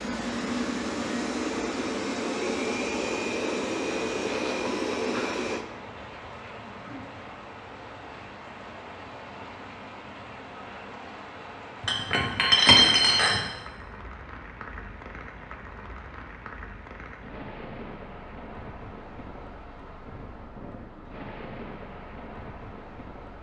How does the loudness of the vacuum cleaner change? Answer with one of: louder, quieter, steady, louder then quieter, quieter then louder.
steady.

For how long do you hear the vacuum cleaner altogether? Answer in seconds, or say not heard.
6 s.